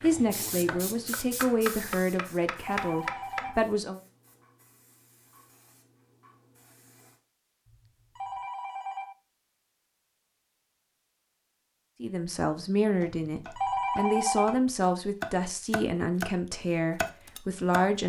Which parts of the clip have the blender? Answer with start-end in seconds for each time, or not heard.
not heard.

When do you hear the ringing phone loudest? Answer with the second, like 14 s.
14 s.